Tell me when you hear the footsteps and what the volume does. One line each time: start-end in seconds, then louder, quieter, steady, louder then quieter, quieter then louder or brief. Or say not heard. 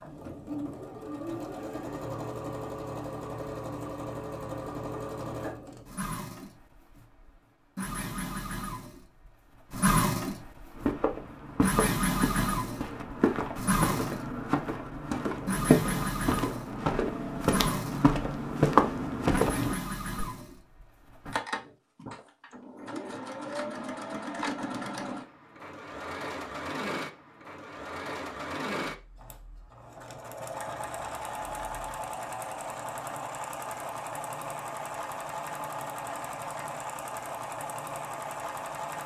10.8-20.2 louder.